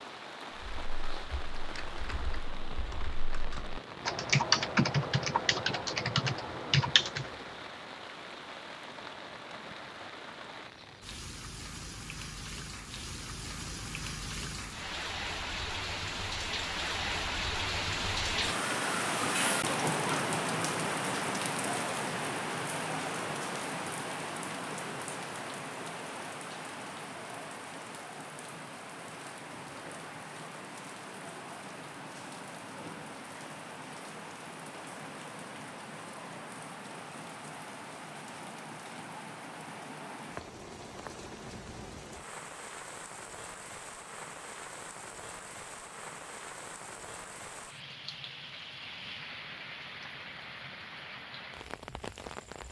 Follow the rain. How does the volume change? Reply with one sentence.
The loudness of the rain goes up, then down.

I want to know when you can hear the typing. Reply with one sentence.
The typing can be heard from 0.8 to 7.3 s.